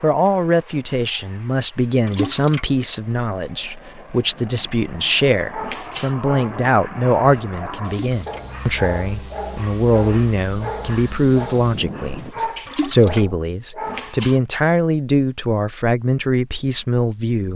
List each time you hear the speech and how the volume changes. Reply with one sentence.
You can hear the speech from 0.0 to 17.5 s, at a steady volume.